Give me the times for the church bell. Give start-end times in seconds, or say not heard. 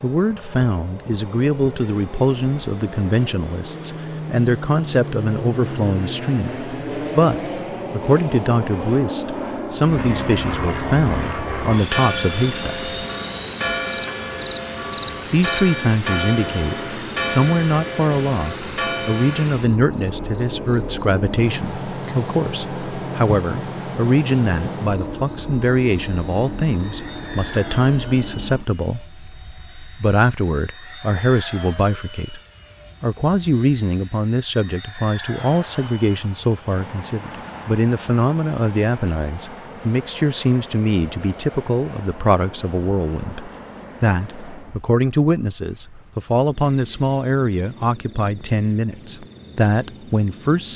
11.1-19.5.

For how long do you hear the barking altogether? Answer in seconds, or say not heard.
not heard.